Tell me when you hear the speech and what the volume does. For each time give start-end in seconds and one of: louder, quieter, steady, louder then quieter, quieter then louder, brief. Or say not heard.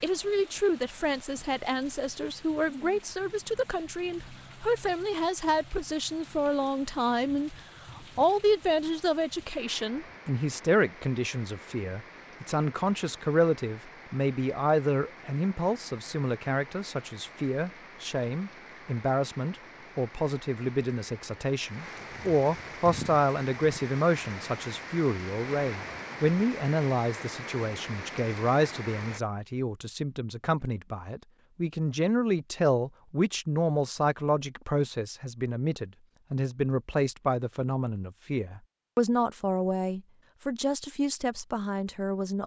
0.0-42.4 steady.